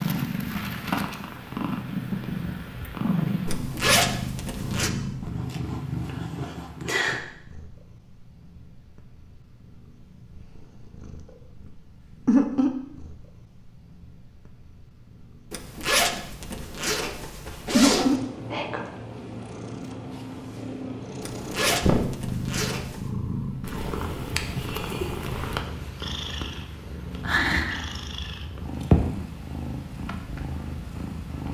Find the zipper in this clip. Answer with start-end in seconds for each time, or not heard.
3.5-4.9, 15.5-18.1, 21.2-23.1.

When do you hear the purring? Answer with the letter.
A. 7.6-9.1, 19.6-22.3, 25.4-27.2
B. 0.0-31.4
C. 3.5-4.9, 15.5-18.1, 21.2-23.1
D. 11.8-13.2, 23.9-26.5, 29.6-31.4
B.